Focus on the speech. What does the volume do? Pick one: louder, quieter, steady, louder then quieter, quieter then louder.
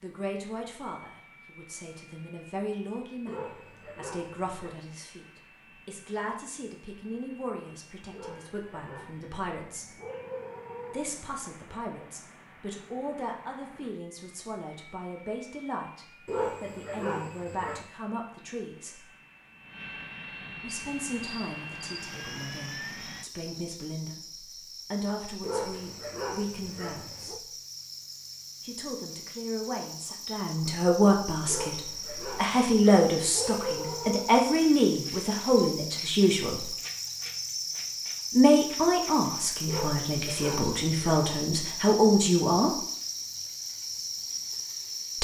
louder.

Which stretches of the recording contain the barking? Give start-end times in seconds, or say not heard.
3.2-4.8, 8.1-11.1, 16.2-17.9, 25.4-27.4, 31.4-34.3, 39.6-41.2.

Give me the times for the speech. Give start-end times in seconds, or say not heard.
0.0-9.9, 10.9-19.1, 20.6-27.5, 28.6-36.6, 38.3-42.8.